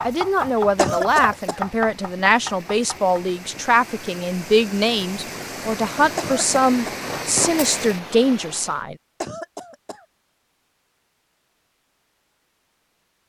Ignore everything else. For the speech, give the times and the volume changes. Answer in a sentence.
You can hear the speech from 0.0 to 8.9 s, at a steady volume.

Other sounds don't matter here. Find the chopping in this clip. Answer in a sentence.
The chopping can be heard from 0.0 to 3.2 s.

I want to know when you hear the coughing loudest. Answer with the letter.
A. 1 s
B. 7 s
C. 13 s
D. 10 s
A.